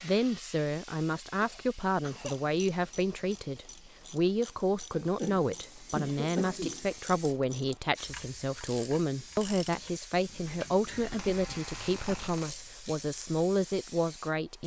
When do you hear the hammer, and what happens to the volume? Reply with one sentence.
The hammer can't be heard in this clip.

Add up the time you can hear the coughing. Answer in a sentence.
The coughing can be heard for 4 seconds in total.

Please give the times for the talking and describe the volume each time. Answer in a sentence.
You can hear the talking from 0.0 to 14.6 s, at a steady volume.